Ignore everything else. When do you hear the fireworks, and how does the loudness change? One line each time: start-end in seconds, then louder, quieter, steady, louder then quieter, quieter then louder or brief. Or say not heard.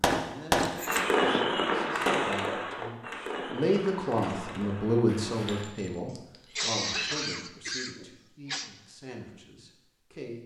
0.0-5.7 quieter.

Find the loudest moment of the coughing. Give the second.
7 s.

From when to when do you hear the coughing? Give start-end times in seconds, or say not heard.
0.6-1.4, 6.5-8.7.